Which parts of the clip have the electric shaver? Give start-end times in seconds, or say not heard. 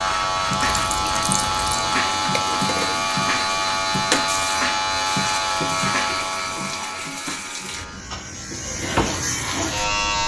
0.0-10.2.